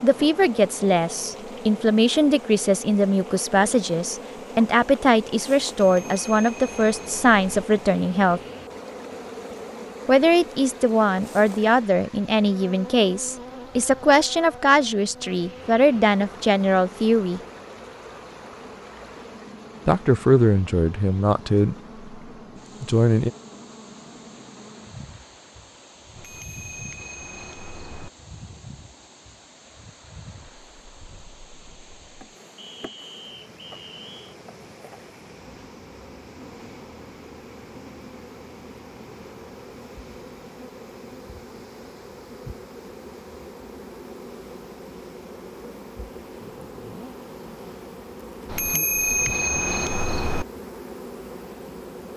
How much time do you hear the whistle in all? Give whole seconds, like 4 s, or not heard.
2 s.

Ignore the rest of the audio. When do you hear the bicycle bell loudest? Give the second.
49 s.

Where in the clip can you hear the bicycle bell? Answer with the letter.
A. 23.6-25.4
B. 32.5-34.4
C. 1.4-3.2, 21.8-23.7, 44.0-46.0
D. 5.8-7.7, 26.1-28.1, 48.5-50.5
D.